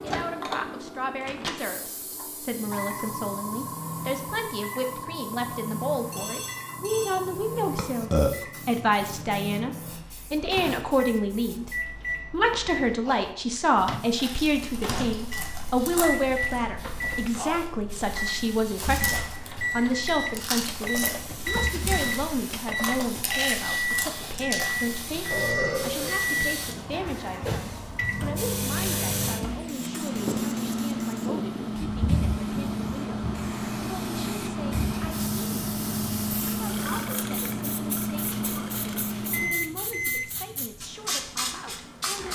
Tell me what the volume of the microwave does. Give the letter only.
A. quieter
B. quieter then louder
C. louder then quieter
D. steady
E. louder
E.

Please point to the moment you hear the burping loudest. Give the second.
8 s.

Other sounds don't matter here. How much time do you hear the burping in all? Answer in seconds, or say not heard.
4 s.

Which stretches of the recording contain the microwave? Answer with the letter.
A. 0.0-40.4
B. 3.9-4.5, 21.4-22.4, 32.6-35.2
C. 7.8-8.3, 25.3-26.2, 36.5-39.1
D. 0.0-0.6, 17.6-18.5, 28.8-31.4
A.